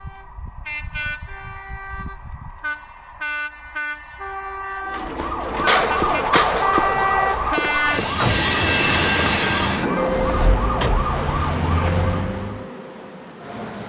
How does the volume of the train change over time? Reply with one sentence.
The volume of the train goes up, then down.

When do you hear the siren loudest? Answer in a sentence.
The volume of the siren peaks at 6 seconds.